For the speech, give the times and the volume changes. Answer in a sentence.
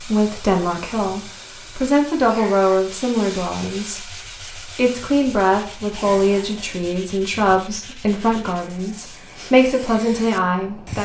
The speech can be heard from 0.0 to 11.0 s, at a steady volume.